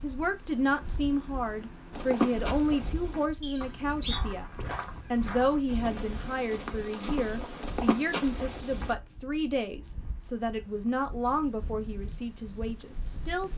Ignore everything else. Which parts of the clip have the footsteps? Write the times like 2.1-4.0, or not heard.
1.9-8.9.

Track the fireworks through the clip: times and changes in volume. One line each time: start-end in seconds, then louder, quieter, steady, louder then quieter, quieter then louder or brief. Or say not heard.
not heard.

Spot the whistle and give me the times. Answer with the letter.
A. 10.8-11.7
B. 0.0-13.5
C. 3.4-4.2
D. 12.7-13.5
C.